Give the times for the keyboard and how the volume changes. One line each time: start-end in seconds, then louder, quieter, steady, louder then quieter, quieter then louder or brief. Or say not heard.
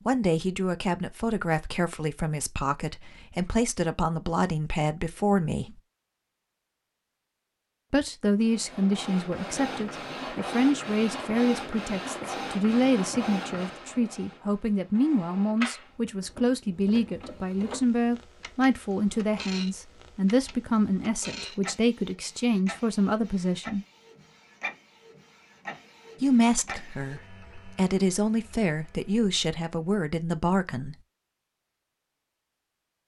not heard.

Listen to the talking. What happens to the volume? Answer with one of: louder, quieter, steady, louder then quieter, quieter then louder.
steady.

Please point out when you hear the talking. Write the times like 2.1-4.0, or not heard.
0.1-5.8, 7.9-23.9, 26.2-30.9.